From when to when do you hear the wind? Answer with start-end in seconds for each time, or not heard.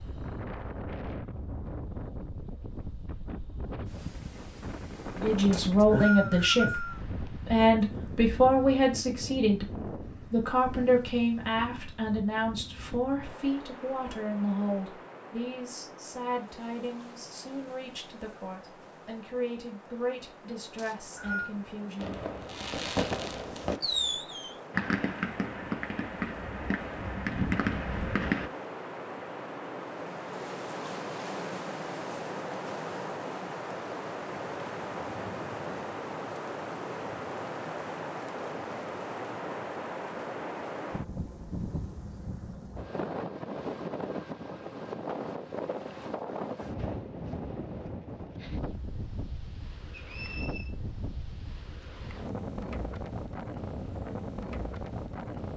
0.0-55.5.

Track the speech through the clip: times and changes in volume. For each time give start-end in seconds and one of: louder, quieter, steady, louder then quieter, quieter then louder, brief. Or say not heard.
5.2-22.2 quieter.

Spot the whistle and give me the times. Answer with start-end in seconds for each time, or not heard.
5.5-7.0, 20.8-21.5, 49.9-50.8.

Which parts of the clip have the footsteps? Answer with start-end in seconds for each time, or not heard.
not heard.